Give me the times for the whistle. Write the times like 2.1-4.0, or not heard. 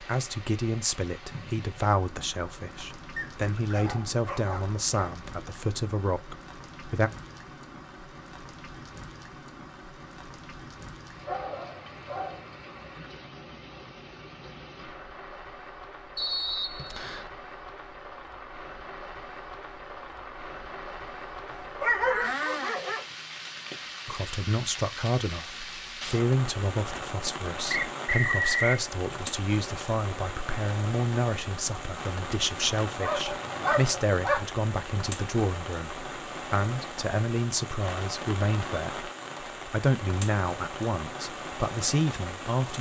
16.1-17.3, 27.7-28.8.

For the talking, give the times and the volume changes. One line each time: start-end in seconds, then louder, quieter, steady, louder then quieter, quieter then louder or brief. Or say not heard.
0.0-7.1 steady
24.1-42.7 steady.